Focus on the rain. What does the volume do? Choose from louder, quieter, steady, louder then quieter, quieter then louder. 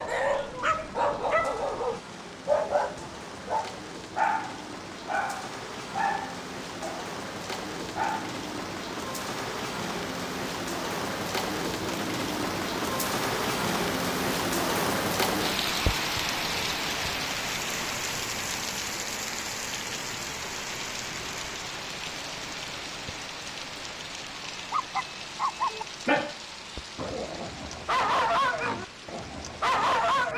louder then quieter.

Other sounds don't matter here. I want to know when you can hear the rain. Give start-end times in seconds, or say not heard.
0.0-30.3.